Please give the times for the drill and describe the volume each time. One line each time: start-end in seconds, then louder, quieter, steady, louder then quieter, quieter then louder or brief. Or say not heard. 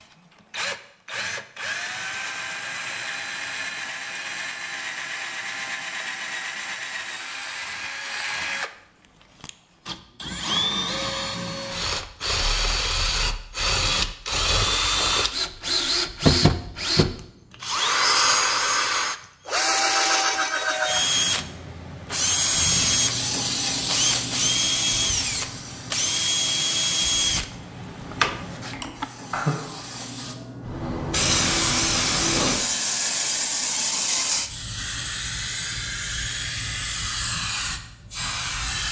0.0-29.1 louder.